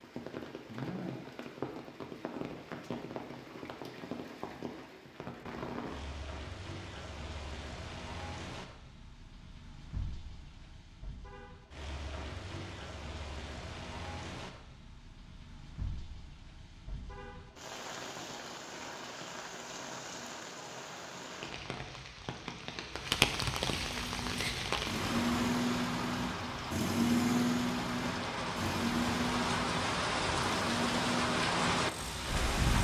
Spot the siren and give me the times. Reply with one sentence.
You can't hear the siren here.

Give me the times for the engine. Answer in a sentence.
You can hear the engine from 23.7 to 32.7 s.